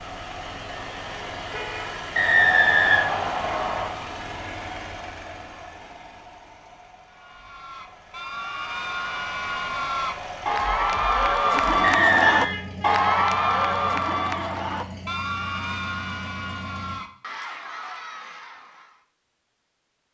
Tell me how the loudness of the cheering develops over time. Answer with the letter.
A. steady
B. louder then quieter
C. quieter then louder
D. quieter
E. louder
B.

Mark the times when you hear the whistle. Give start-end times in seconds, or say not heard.
2.1-3.9, 11.8-12.5.